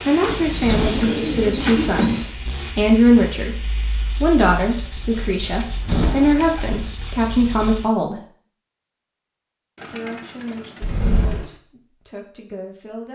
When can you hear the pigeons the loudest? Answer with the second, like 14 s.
2 s.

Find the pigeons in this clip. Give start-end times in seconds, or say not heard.
0.2-2.2, 4.6-6.9, 9.8-11.6.